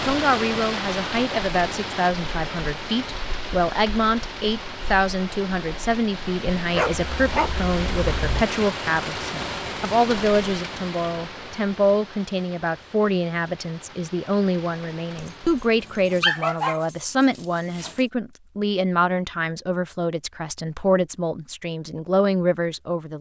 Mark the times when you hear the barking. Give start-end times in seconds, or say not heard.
6.7-8.4, 15.2-18.1.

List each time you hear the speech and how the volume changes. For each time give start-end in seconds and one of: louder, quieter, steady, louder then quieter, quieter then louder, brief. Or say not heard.
0.0-23.1 steady.